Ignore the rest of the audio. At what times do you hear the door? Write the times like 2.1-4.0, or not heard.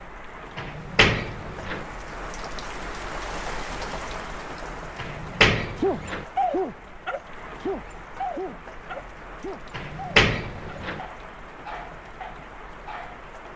0.6-1.9, 5.0-6.2, 9.8-11.0.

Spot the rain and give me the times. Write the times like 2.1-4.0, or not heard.
0.0-13.5.